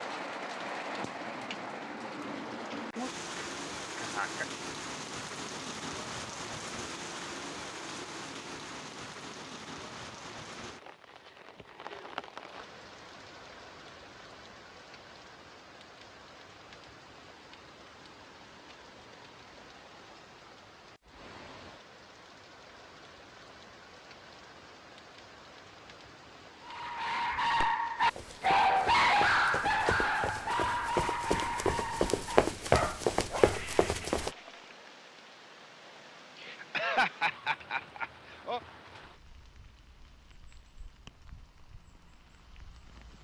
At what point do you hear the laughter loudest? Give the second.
37 s.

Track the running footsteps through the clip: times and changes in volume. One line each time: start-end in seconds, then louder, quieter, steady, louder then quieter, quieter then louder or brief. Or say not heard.
27.5-34.3 louder.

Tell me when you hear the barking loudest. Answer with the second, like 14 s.
29 s.